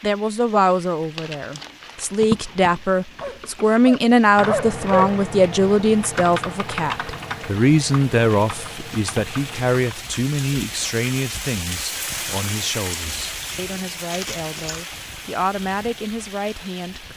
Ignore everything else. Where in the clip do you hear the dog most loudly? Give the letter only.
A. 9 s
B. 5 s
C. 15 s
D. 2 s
B.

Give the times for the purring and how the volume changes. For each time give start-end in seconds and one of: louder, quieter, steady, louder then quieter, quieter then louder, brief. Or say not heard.
not heard.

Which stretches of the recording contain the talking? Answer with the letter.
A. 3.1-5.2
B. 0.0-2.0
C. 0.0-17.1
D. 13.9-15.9
C.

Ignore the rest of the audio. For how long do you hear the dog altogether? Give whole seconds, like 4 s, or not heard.
2 s.